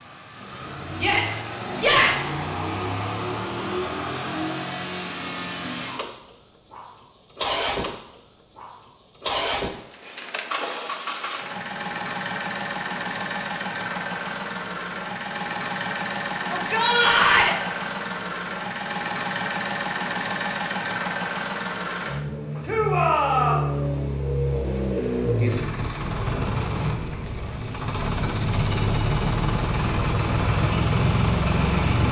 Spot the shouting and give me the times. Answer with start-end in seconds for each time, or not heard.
0.9-2.4, 16.4-17.6, 22.6-23.7.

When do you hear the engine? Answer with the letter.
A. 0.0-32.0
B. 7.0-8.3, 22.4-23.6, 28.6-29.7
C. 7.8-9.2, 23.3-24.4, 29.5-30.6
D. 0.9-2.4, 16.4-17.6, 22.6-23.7
A.